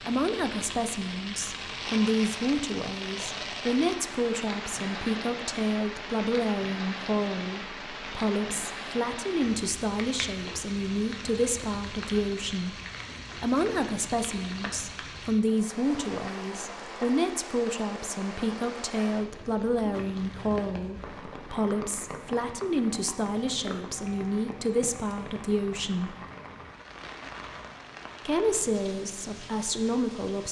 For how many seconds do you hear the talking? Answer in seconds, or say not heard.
28 s.